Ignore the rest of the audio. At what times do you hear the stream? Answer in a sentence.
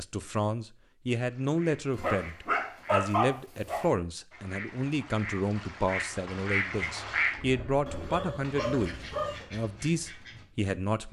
You can't hear the stream here.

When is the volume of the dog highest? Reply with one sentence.
The loudest moment of the dog is at 3 seconds.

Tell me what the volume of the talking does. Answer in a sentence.
The loudness of the talking stays about the same.